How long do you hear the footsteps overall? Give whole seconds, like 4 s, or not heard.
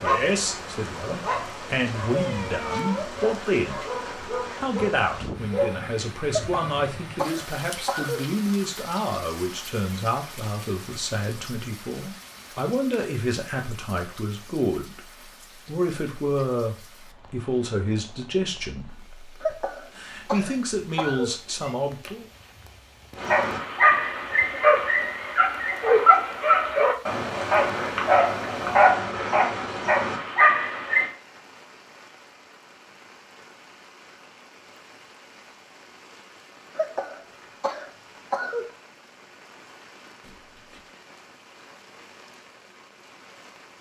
not heard.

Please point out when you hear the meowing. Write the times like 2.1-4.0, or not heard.
2.1-3.1, 21.6-22.5, 40.2-40.9.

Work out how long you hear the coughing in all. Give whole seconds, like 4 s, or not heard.
6 s.